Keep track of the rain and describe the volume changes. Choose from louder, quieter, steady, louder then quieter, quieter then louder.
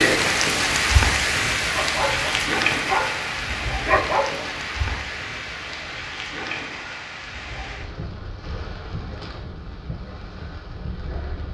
quieter.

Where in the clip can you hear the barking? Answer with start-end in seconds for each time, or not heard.
1.7-4.5.